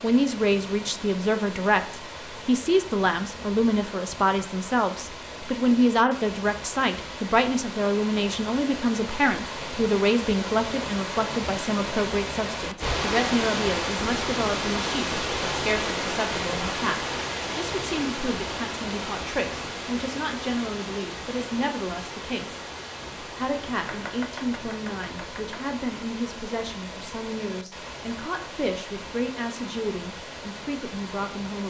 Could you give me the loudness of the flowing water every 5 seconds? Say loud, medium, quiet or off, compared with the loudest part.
medium, medium, loud, loud, medium, medium, medium.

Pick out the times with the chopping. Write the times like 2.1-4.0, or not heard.
23.8-25.8.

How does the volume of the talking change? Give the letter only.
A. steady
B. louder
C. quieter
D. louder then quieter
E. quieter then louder
C.